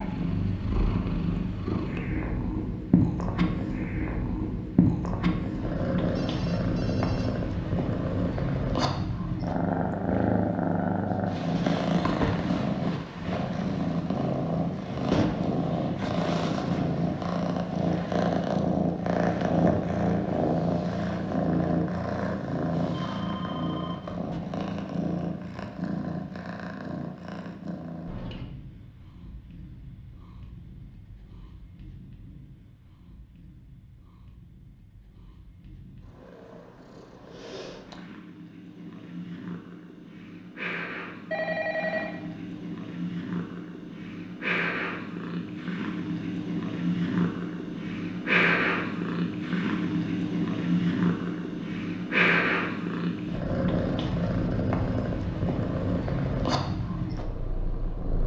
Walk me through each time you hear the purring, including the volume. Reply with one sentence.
You can hear the purring from 0.0 to 58.2 s, getting quieter then louder.